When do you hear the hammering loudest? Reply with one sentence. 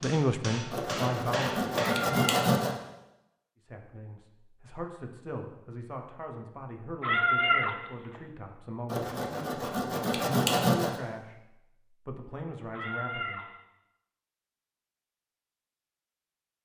The volume of the hammering peaks at 2 seconds.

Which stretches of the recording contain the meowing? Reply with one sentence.
The meowing can be heard from 1.9 to 2.5 s, from 7.0 to 7.8 s and from 12.7 to 13.4 s.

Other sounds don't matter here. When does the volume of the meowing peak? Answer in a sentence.
The volume of the meowing peaks at 7 seconds.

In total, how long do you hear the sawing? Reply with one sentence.
The sawing can be heard for 4 seconds in total.